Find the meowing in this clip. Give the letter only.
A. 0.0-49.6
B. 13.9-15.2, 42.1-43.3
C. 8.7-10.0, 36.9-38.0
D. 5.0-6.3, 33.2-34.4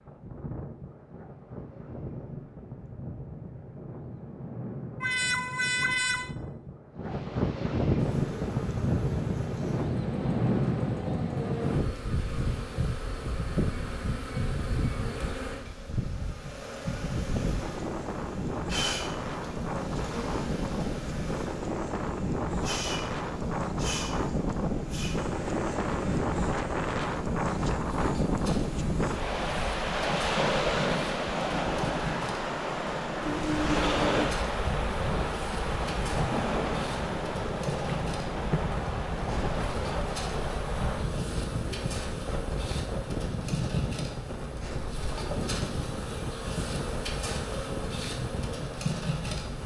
D.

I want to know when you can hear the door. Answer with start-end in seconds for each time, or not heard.
not heard.